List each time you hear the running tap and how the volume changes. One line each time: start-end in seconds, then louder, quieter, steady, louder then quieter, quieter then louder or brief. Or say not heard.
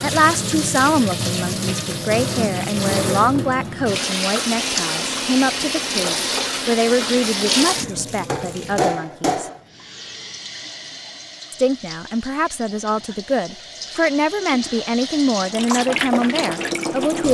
0.0-17.2 quieter then louder.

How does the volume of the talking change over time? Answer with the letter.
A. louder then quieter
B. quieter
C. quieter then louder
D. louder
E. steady
E.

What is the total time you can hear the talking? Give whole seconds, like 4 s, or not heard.
15 s.